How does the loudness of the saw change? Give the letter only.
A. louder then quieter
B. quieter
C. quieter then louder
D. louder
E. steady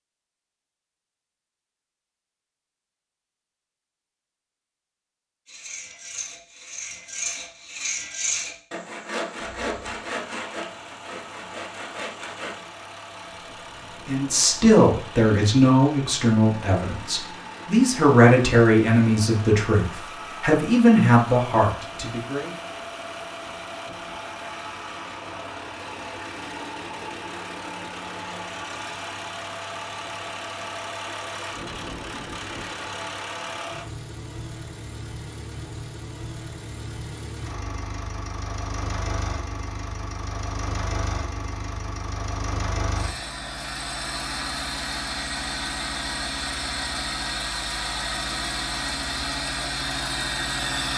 A.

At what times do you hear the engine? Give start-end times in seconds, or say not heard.
9.3-50.9.